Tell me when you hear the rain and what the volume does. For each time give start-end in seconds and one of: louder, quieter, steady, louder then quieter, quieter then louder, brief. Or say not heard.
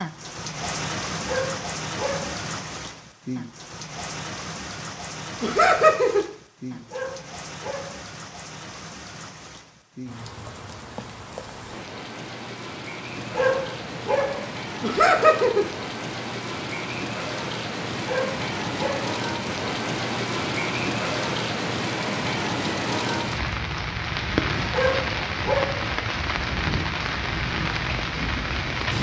0.0-28.9 quieter then louder.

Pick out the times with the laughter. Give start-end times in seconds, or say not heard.
5.4-6.2, 14.8-15.7.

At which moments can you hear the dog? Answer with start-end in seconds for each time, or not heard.
1.1-2.4, 6.7-8.1, 13.2-14.5, 17.9-19.1, 24.6-25.9.